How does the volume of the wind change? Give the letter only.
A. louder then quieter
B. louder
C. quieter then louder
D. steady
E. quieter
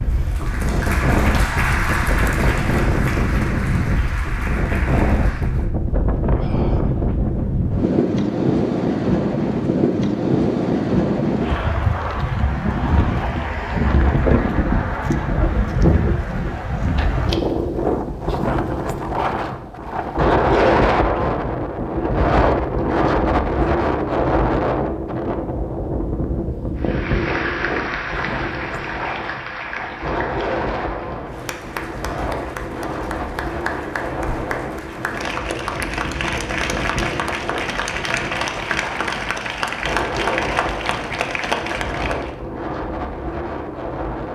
E.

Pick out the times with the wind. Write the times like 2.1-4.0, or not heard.
0.0-44.2.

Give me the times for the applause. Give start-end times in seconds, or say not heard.
0.0-5.7, 26.8-42.4.